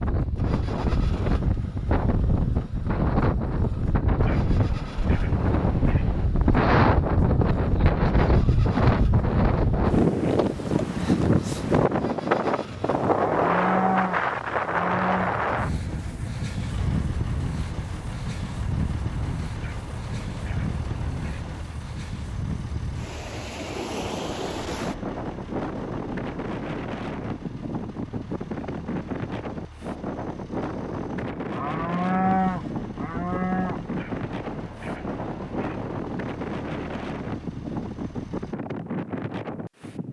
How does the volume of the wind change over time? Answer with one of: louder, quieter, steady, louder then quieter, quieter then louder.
quieter.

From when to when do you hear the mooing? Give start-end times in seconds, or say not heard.
13.1-15.4, 31.5-33.8.